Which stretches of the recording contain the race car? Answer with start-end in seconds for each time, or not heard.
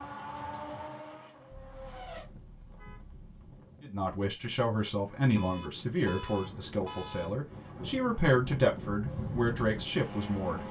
0.0-2.2, 9.0-10.6.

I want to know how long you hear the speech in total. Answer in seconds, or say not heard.
7 s.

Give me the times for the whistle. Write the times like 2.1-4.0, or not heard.
not heard.